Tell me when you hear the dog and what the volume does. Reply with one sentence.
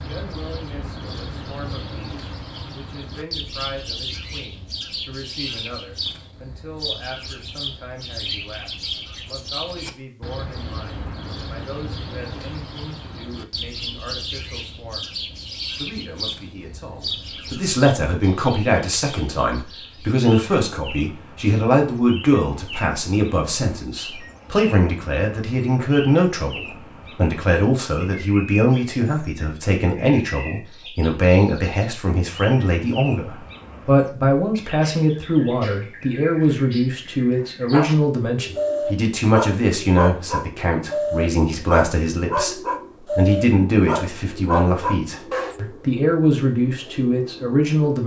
You can hear the dog from 37.7 to 45.5 s, at a steady volume.